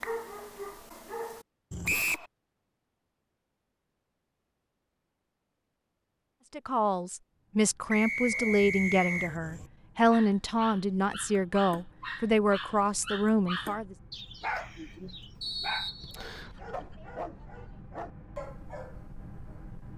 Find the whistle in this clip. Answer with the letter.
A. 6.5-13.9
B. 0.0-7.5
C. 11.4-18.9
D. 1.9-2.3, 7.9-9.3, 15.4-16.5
D.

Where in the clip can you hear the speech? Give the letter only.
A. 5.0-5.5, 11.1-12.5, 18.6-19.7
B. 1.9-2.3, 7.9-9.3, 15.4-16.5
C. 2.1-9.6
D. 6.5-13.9
D.